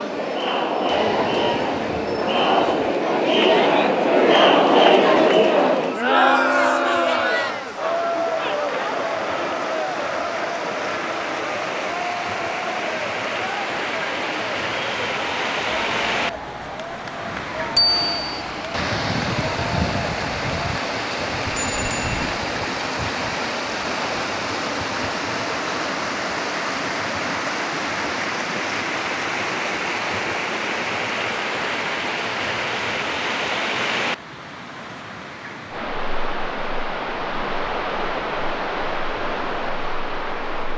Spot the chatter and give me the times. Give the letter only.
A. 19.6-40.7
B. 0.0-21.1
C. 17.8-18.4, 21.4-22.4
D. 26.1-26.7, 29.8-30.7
B.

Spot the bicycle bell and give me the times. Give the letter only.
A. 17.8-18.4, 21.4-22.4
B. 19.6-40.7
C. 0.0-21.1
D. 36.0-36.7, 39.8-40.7
A.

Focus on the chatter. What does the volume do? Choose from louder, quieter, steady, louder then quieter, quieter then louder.
quieter.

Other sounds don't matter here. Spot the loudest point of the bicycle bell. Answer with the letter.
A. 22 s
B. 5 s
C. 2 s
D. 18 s
D.